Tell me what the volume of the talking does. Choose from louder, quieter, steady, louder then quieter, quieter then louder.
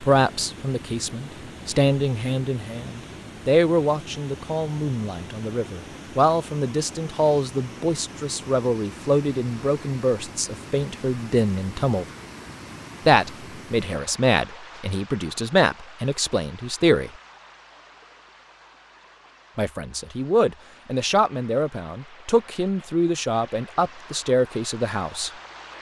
steady.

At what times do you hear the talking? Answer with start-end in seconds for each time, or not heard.
0.0-12.1, 13.1-17.1, 19.6-25.3.